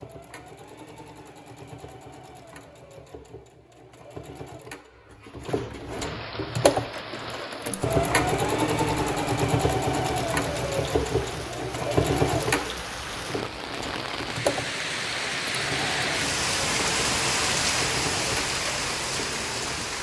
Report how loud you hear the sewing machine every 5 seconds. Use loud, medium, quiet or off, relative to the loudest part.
quiet, loud, loud, medium.